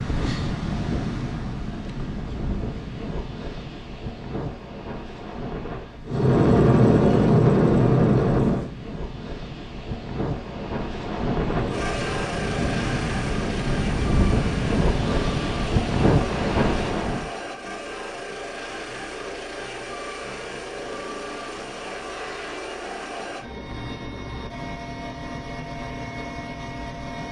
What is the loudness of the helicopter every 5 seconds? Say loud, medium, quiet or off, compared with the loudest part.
off, loud, quiet, quiet, quiet, quiet.